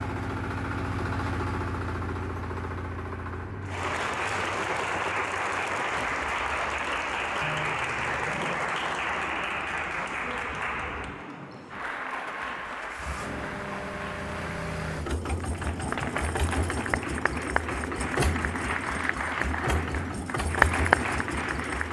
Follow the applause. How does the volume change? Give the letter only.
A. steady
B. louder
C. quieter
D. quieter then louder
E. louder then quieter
D.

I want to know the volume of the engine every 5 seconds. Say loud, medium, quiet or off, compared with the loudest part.
loud, quiet, medium, loud, loud.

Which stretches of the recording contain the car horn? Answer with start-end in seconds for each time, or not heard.
7.4-8.4, 13.2-15.1.